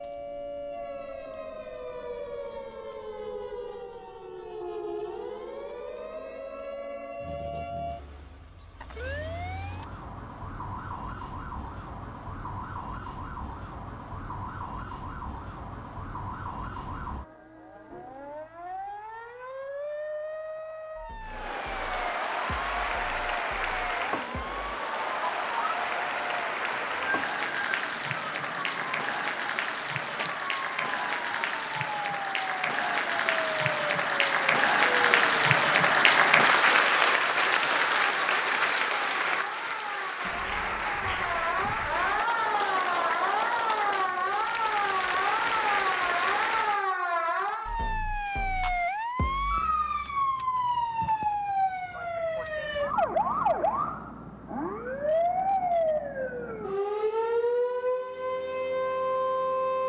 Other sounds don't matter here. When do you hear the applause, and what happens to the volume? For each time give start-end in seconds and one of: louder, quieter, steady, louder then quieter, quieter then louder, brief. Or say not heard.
21.2-46.9 louder then quieter.